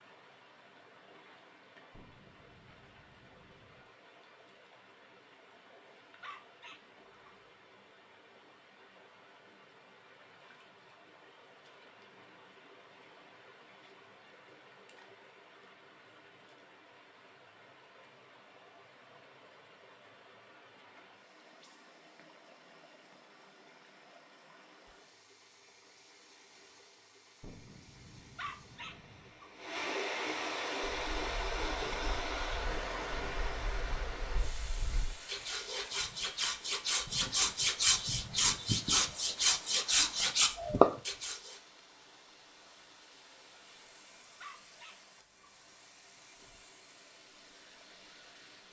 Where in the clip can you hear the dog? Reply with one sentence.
You can hear the dog from 6.2 to 7.5 s, from 28.4 to 29.5 s and from 44.4 to 45.5 s.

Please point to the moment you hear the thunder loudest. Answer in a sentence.
The loudest moment of the thunder is at 28 seconds.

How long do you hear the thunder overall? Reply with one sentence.
The thunder can be heard for 4 seconds in total.